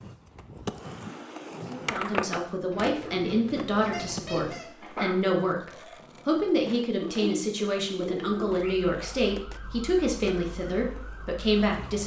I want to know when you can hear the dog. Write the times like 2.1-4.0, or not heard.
3.9-5.3.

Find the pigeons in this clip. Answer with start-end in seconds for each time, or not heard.
2.7-4.5, 7.0-8.8.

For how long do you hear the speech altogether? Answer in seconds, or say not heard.
10 s.